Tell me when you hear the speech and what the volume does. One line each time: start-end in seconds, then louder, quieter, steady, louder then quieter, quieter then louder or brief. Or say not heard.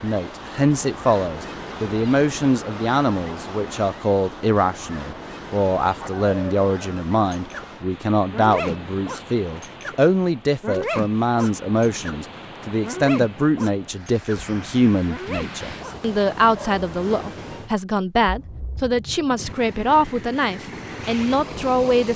0.0-22.1 steady.